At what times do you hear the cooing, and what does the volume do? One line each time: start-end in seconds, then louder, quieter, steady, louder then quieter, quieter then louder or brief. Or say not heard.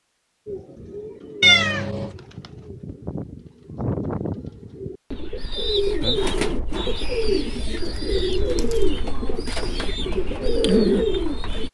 0.5-11.7 louder.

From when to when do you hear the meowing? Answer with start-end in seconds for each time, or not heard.
1.4-2.1, 7.8-8.9.